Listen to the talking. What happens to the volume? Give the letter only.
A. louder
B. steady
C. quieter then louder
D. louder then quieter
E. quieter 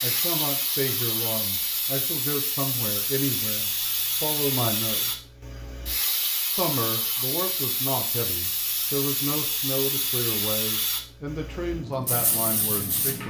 B.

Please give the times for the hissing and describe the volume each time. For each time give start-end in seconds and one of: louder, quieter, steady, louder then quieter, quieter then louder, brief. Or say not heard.
0.0-13.2 steady.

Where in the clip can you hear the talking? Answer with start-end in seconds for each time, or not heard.
0.0-5.2, 6.5-13.2.